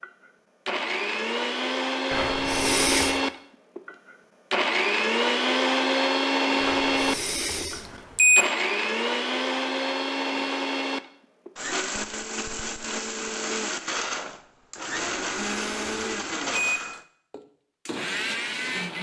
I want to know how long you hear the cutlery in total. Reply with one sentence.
You can't hear the cutlery here.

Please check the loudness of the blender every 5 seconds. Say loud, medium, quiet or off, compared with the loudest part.
loud, loud, medium, medium.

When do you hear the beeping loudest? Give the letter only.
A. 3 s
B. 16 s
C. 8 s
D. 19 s
C.